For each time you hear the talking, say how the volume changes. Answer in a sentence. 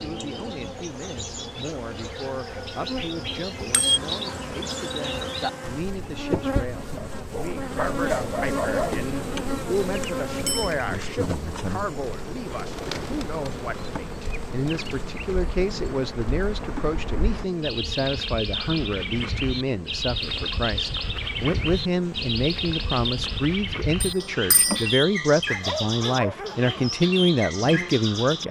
You can hear the talking from 0.0 to 28.4 s, getting louder.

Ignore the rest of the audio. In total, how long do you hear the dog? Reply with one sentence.
The dog can be heard for 3 seconds in total.